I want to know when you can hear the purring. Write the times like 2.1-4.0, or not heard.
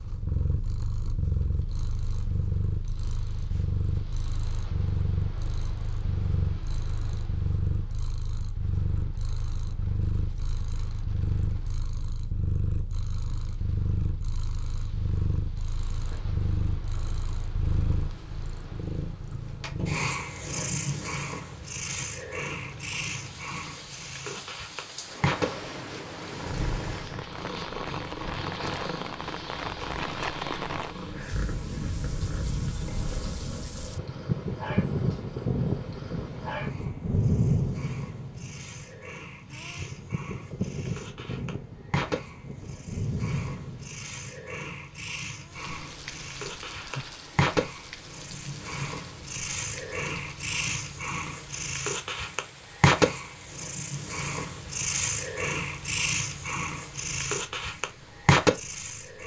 0.0-59.2.